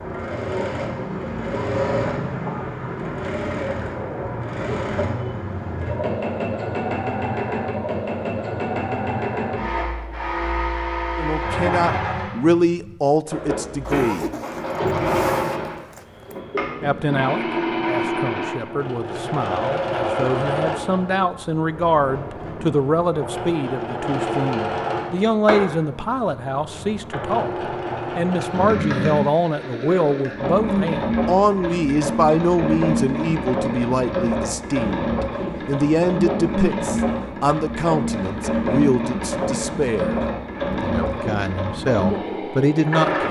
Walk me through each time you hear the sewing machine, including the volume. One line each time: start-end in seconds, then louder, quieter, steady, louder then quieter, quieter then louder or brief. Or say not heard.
0.0-43.2 steady.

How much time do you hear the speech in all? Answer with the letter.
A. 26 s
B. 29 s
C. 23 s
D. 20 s
B.